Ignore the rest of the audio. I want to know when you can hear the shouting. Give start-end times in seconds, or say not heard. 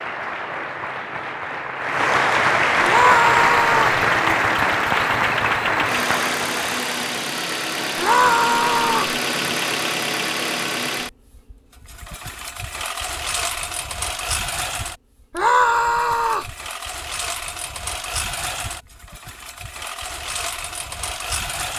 2.8-4.0, 8.0-9.2, 15.3-16.5.